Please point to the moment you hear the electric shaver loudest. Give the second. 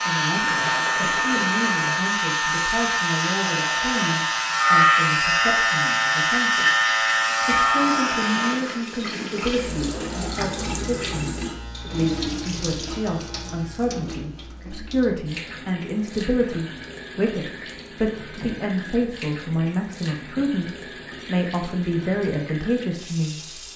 5 s.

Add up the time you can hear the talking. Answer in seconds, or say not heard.
23 s.